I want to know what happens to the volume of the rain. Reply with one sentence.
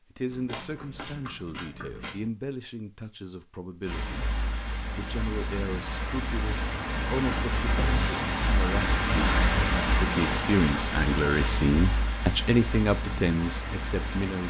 The loudness of the rain goes up, then down.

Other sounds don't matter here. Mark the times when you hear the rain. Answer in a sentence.
You can hear the rain from 3.9 to 14.4 s.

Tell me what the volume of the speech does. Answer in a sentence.
The loudness of the speech goes up.